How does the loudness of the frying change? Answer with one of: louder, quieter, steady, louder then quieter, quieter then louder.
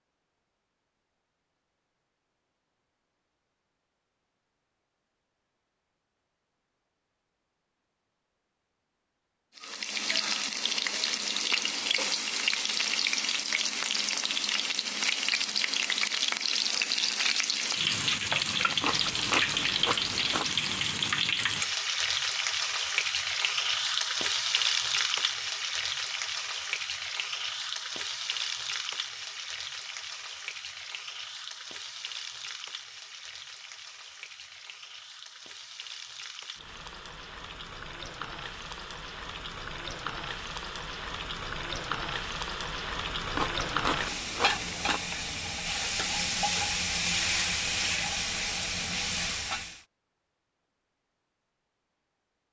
quieter then louder.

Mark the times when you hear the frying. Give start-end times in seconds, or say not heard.
9.6-49.8.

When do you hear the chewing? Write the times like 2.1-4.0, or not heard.
18.8-20.4, 43.3-45.0.